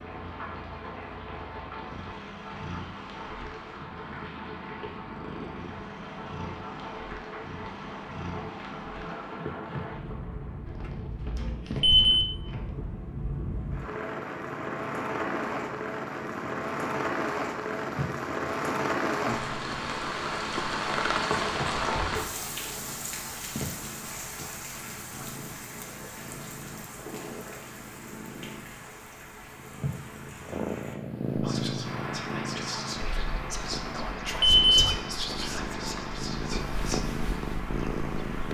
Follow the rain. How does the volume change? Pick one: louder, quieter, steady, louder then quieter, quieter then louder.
louder then quieter.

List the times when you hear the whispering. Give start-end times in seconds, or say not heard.
31.4-37.0.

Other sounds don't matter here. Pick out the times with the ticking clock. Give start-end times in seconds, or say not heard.
not heard.